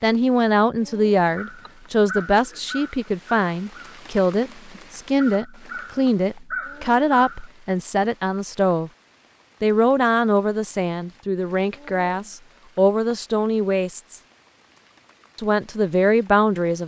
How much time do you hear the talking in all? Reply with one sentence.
You can hear the talking for 15 seconds altogether.